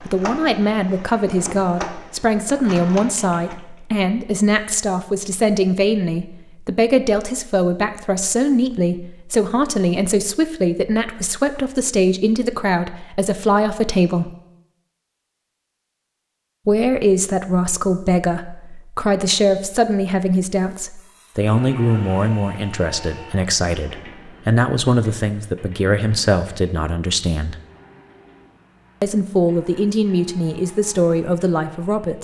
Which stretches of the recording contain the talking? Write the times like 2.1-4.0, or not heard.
0.0-14.3, 16.6-27.6, 29.0-32.1.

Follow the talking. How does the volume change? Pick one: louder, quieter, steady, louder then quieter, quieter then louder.
steady.